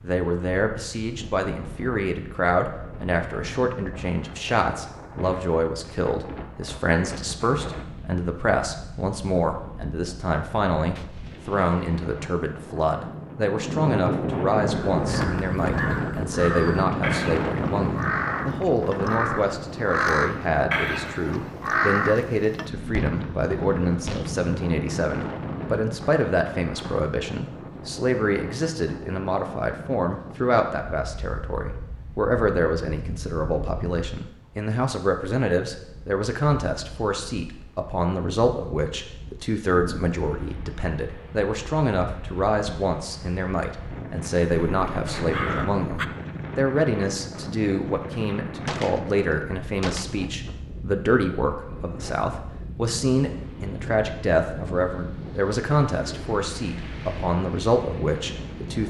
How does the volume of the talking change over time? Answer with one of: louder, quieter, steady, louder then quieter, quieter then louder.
steady.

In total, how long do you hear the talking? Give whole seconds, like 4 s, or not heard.
59 s.